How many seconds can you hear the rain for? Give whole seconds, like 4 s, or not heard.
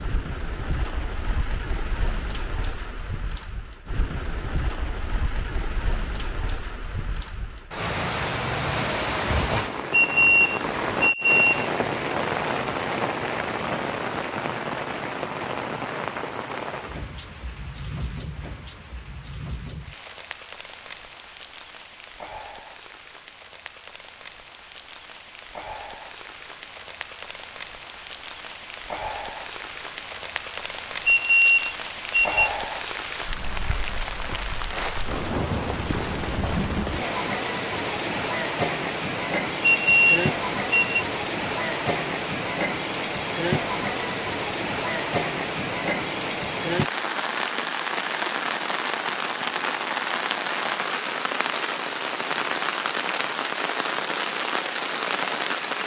56 s.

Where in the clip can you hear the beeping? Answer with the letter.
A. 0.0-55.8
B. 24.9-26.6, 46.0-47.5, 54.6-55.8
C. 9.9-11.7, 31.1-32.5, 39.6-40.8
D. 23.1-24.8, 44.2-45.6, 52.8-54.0
C.